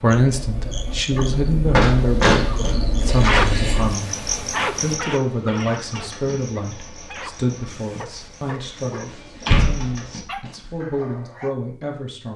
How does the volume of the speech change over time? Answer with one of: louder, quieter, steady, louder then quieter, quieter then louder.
quieter.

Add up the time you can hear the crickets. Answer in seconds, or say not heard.
10 s.